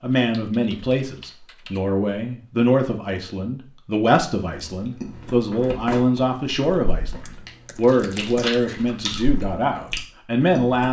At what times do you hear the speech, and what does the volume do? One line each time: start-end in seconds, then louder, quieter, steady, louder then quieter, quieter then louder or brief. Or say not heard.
0.0-10.8 steady.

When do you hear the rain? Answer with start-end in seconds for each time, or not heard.
not heard.